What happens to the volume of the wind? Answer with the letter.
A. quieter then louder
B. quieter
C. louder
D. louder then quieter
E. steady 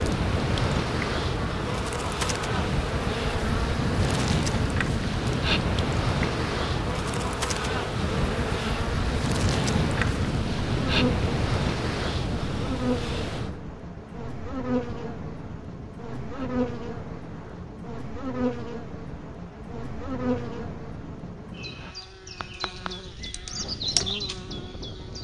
B.